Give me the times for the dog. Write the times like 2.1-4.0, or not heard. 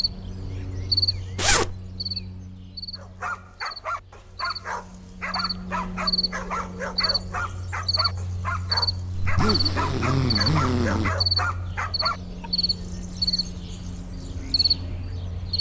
3.0-12.5.